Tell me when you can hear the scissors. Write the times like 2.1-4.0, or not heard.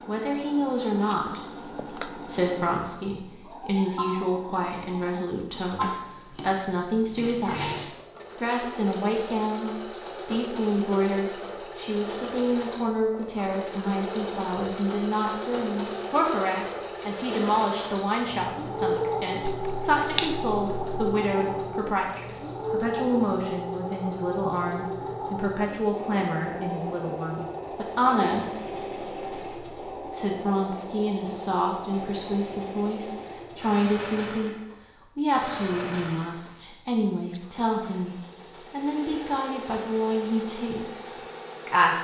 1.1-2.4, 19.4-21.1, 37.3-37.9.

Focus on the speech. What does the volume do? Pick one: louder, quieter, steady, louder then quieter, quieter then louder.
steady.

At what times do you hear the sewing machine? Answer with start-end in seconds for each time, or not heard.
0.0-42.0.